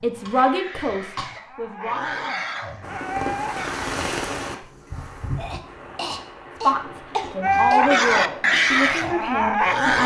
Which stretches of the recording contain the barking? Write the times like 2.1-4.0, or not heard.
0.0-4.7, 7.4-10.0.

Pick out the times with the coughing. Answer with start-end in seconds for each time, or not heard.
0.2-1.4, 5.3-7.8.